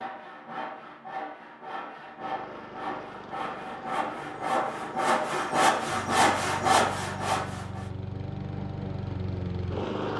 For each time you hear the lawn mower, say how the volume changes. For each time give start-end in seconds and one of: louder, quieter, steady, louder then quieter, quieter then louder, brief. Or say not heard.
2.1-10.1 louder.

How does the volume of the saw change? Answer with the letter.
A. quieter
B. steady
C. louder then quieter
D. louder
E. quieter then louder
D.